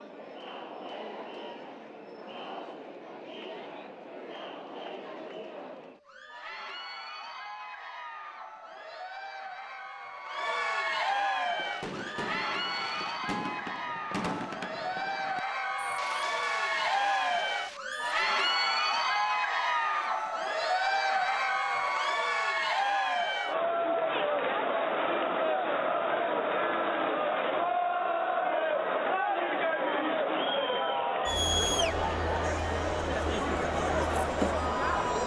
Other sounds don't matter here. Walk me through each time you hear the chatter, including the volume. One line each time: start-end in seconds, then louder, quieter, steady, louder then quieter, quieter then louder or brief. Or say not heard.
0.0-35.2 louder.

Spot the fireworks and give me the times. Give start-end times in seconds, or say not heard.
11.6-18.0.